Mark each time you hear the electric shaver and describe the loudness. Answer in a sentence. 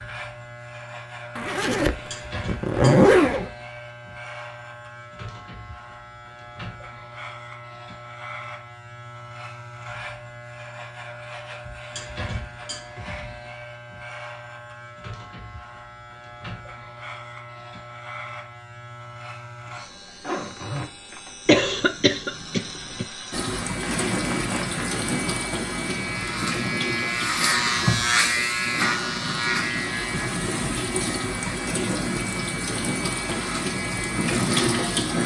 The electric shaver can be heard from 0.0 to 35.2 s, getting louder.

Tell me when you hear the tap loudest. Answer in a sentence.
The volume of the tap peaks at 35 seconds.